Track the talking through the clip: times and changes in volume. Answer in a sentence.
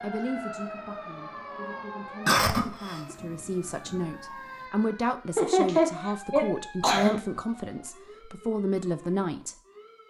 You can hear the talking from 0.0 to 9.6 s, getting louder.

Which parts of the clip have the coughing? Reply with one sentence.
The coughing can be heard from 2.2 to 3.1 s and from 5.3 to 7.2 s.